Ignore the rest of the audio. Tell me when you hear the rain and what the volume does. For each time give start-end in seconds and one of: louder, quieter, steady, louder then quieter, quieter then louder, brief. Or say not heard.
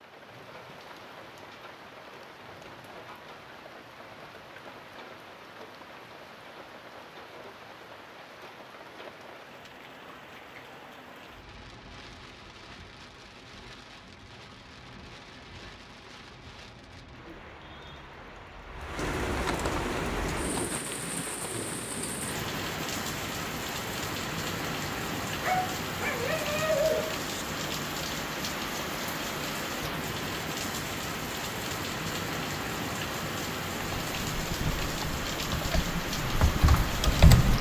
0.0-37.5 louder.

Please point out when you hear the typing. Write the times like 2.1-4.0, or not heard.
33.8-37.5.